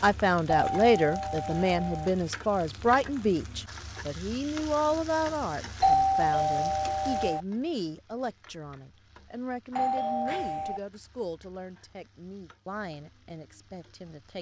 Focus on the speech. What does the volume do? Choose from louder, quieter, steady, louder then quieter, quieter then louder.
quieter.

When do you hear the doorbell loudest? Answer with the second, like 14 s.
6 s.